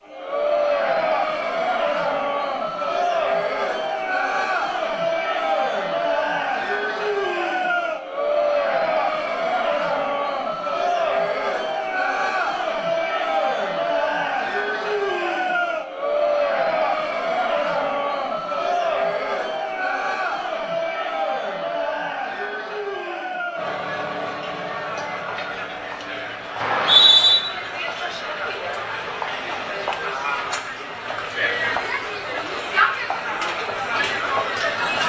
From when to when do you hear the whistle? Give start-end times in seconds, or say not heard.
26.6-27.4.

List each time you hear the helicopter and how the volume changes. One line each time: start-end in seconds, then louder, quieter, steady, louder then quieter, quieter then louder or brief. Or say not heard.
not heard.